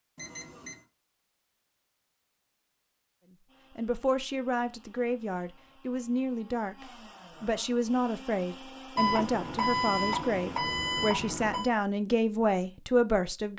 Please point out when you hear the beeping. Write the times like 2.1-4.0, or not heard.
0.1-0.8, 8.9-11.7.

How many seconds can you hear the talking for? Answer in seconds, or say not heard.
10 s.